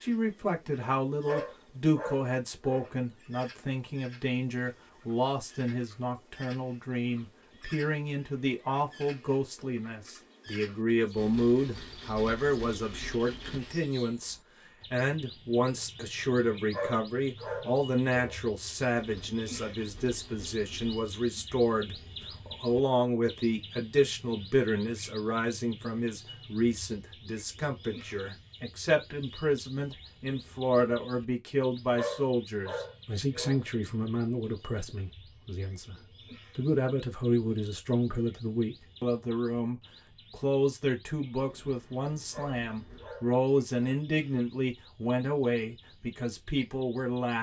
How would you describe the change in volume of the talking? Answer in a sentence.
The volume of the talking stays about the same.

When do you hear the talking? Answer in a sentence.
You can hear the talking from 0.0 to 36.0 s and from 36.5 to 47.3 s.